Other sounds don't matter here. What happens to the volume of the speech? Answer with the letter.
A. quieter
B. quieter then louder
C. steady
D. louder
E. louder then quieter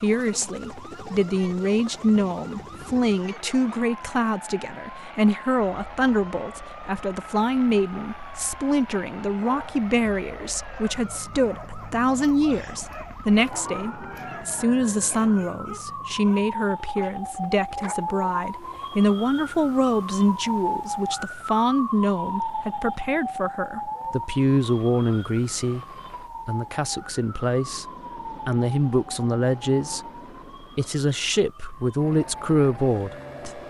C.